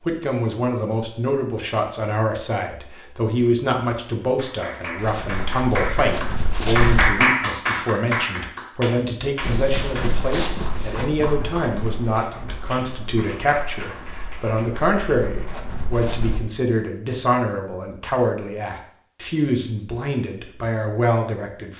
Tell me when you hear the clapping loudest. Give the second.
7 s.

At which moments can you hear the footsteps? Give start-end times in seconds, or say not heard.
5.0-7.2, 9.4-16.4.